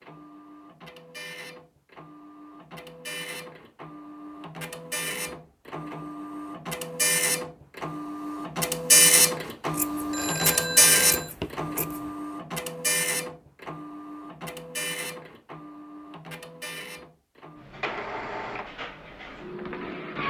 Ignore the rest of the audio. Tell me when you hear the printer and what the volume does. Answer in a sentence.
The printer can be heard from 0.0 to 20.2 s, getting louder then quieter.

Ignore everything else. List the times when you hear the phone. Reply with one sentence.
You can hear the phone from 10.1 to 11.3 s.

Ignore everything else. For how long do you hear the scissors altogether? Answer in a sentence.
You can hear the scissors for 2 seconds altogether.